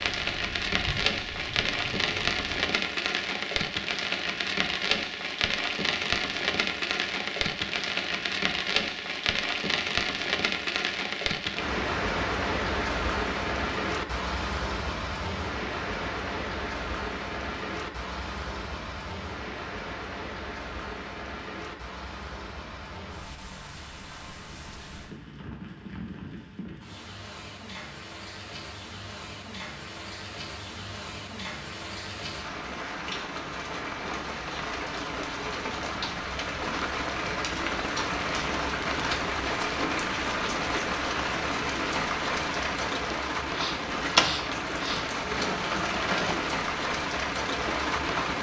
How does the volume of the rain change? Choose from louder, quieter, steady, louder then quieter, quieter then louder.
quieter then louder.